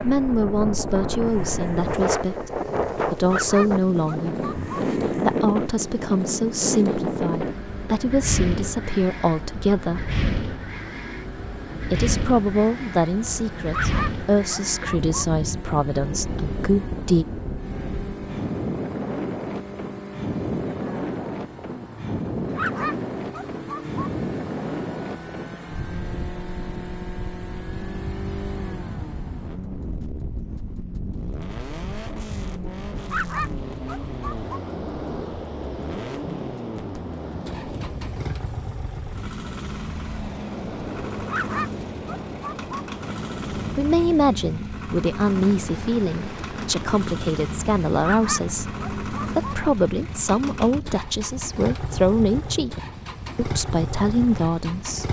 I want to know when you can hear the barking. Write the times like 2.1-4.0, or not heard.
3.2-4.7, 13.7-15.2, 22.5-24.1, 33.0-34.6, 41.2-42.9, 48.0-49.5.